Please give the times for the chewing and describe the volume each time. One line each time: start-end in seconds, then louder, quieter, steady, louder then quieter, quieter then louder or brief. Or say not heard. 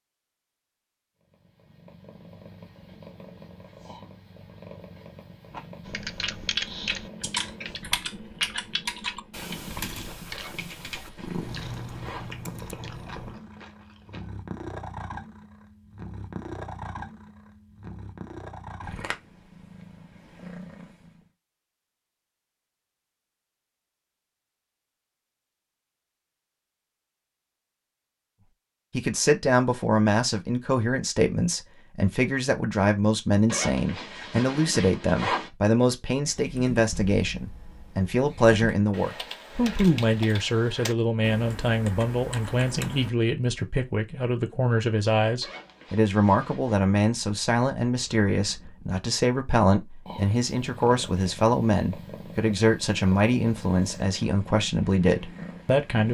5.5-14.3 quieter.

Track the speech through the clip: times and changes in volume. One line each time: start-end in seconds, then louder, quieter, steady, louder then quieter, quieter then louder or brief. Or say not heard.
28.9-56.0 steady.